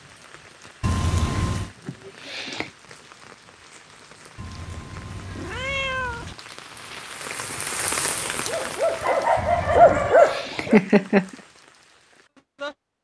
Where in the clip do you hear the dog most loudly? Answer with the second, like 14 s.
10 s.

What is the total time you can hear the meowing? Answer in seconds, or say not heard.
4 s.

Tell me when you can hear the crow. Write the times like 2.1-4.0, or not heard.
not heard.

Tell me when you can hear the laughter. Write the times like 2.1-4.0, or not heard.
1.9-2.7, 9.8-11.3.